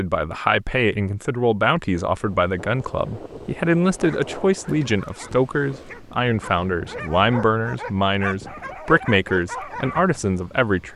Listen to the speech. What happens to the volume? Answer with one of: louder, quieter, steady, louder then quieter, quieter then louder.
steady.